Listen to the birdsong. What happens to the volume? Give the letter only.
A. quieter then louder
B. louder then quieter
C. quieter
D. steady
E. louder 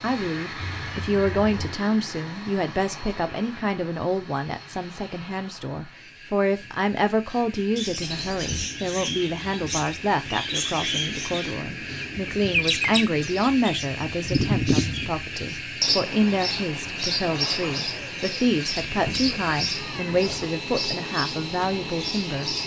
B.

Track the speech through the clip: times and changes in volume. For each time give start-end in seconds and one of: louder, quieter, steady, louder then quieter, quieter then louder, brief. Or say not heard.
0.0-22.5 steady.